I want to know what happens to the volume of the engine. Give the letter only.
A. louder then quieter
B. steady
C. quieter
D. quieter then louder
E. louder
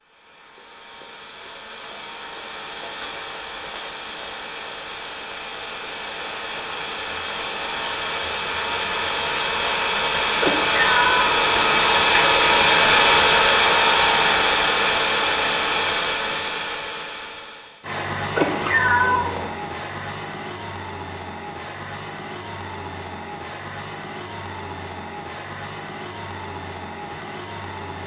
A.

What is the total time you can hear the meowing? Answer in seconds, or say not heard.
3 s.